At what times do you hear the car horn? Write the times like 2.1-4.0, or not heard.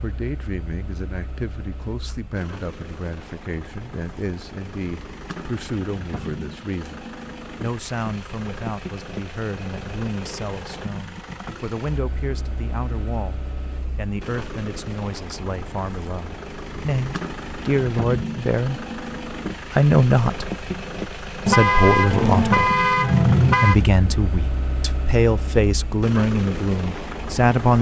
21.4-23.8.